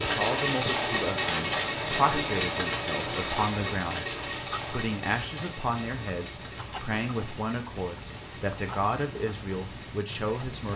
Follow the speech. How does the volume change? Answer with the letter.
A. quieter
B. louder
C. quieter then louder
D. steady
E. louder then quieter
D.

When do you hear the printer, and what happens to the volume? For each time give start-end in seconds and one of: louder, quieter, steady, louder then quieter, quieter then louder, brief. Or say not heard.
0.0-10.7 quieter.